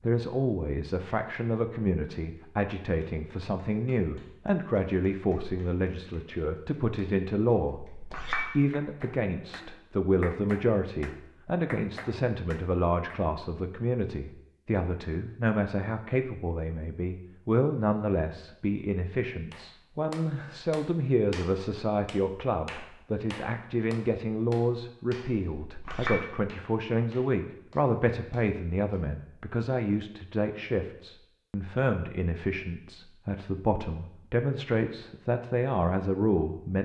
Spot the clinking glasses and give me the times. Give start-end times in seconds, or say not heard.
7.8-8.5, 25.6-26.2.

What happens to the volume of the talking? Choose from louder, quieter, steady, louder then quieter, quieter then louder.
steady.